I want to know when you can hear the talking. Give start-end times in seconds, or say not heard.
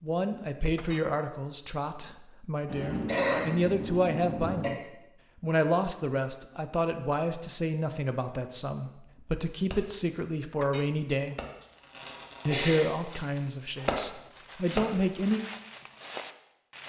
0.0-4.8, 5.4-11.3, 12.4-15.4.